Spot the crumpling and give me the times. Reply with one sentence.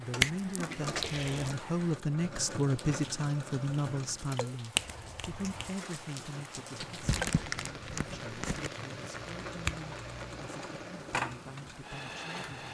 The crumpling can be heard from 0.3 to 1.5 s and from 7.0 to 8.7 s.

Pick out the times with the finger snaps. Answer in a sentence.
The finger snaps can be heard from 0.2 to 1.6 s, from 4.8 to 5.7 s and from 9.2 to 10.4 s.